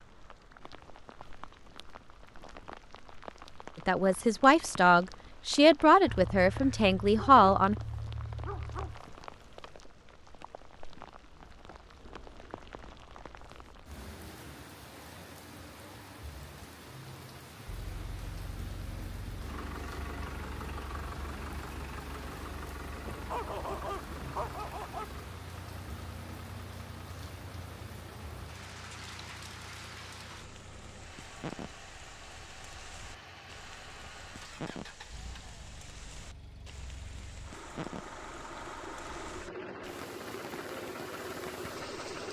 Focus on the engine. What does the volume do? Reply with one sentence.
The volume of the engine goes down, then up.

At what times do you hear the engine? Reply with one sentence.
The engine can be heard from 17.6 to 42.2 s.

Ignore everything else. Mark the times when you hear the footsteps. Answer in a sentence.
You can't hear the footsteps here.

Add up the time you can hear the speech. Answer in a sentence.
You can hear the speech for 4 seconds altogether.